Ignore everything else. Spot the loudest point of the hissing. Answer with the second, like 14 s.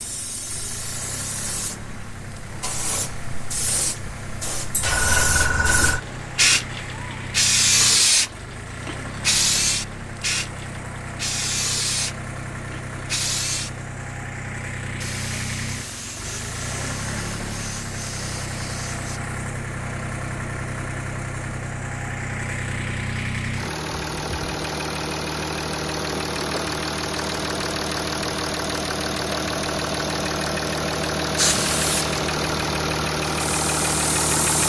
8 s.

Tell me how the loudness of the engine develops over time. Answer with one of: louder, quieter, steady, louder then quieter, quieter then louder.
louder.